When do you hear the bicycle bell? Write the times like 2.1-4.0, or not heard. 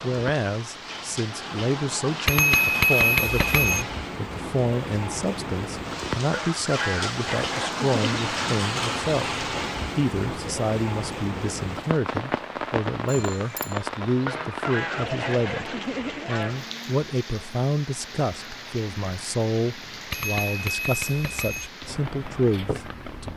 2.2-3.9, 13.1-13.8, 20.1-21.7.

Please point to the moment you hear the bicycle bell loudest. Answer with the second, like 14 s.
3 s.